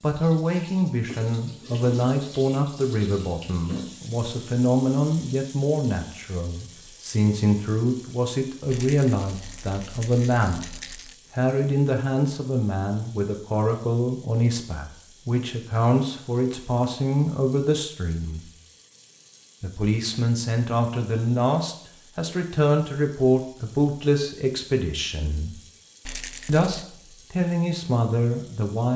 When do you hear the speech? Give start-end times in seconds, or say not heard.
0.0-18.5, 19.6-25.6, 26.4-28.9.